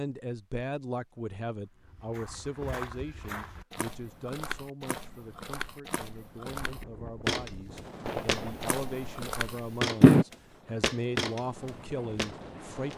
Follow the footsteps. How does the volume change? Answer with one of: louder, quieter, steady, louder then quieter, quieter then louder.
louder.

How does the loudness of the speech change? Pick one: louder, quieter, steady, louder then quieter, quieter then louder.
quieter then louder.